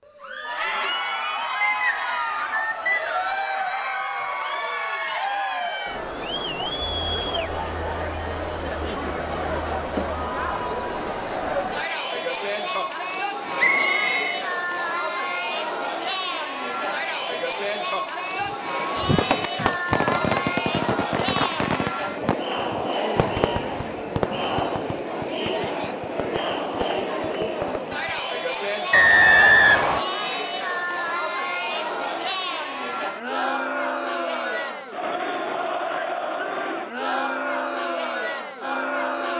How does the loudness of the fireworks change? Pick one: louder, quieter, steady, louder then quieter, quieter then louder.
quieter.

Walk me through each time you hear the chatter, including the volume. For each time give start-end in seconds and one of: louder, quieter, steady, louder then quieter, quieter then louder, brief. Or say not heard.
0.1-39.3 steady.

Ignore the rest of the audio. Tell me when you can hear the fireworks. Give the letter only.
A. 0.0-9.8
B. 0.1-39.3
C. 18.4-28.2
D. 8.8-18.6
C.